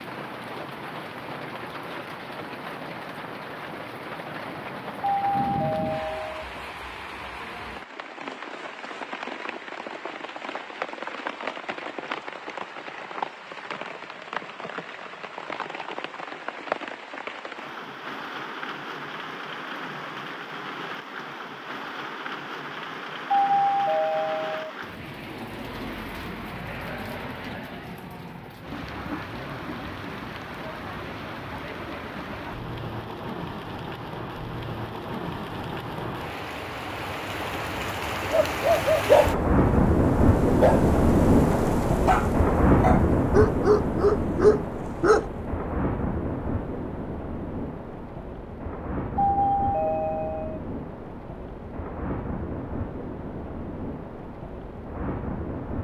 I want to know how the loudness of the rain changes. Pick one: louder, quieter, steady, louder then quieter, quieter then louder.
louder then quieter.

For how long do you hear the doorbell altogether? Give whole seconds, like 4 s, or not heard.
4 s.